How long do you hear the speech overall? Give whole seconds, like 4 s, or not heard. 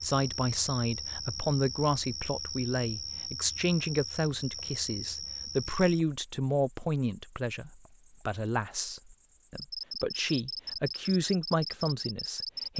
13 s.